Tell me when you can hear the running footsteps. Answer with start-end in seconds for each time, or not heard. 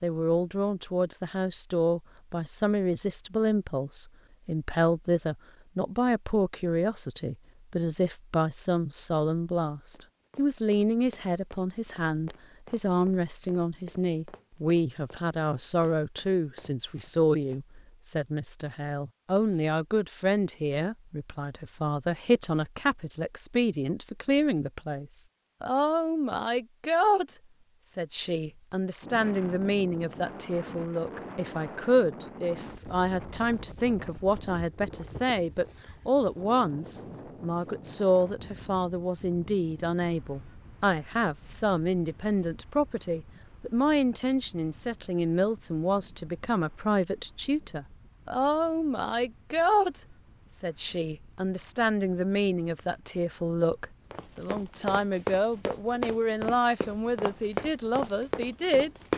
9.9-17.6, 54.1-59.1.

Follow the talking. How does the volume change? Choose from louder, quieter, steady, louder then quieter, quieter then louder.
steady.